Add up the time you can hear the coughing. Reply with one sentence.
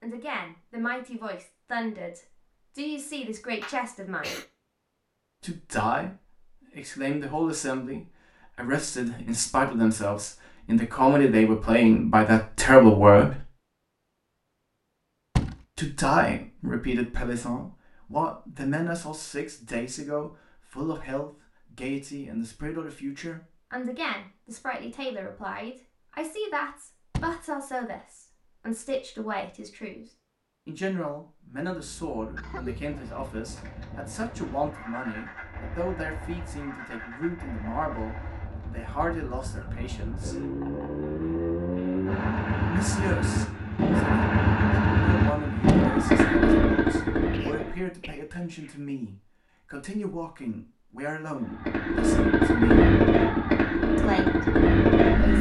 You can hear the coughing for 3 seconds altogether.